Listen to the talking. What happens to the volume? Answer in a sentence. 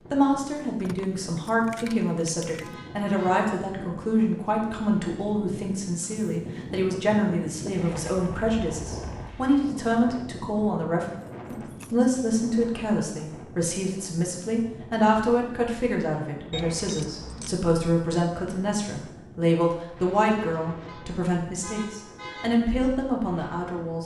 The loudness of the talking stays about the same.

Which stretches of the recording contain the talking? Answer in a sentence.
You can hear the talking from 0.1 to 24.0 s.